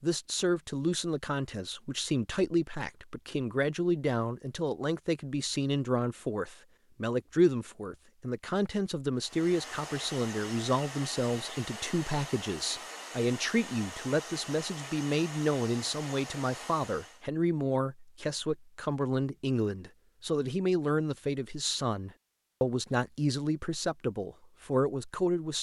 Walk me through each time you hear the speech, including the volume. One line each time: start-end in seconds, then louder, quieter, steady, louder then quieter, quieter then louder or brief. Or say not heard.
0.0-25.5 steady.